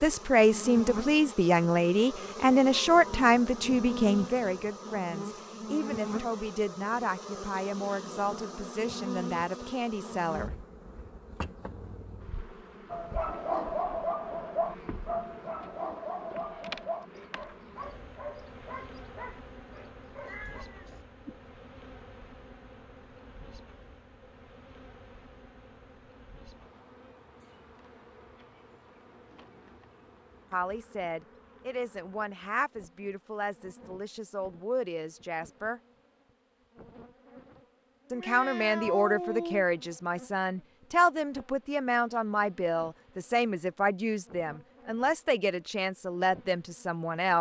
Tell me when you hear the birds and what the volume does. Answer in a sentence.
You can't hear the birds here.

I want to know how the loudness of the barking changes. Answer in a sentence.
The volume of the barking goes down.